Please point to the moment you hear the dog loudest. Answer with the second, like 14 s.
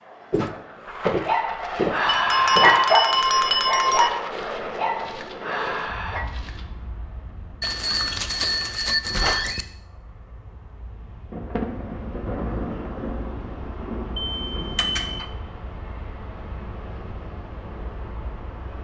3 s.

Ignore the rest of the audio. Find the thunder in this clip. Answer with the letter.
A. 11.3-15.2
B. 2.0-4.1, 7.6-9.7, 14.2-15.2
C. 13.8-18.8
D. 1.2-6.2
A.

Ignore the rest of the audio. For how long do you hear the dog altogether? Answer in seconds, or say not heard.
5 s.